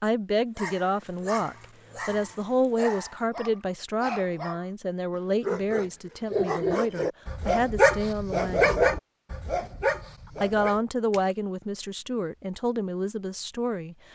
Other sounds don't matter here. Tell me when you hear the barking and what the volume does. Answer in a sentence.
The barking can be heard from 0.6 to 10.8 s, getting louder.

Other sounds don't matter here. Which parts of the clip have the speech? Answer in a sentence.
You can hear the speech from 0.0 to 8.8 s and from 10.3 to 13.9 s.